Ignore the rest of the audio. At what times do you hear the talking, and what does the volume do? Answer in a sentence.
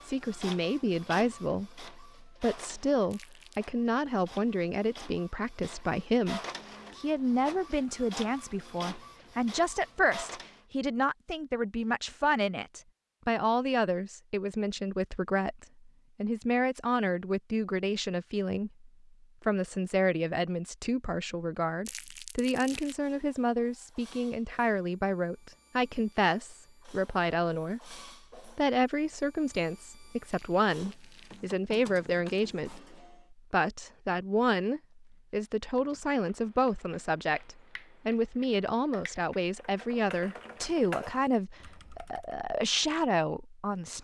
The talking can be heard from 0.1 to 43.9 s, at a steady volume.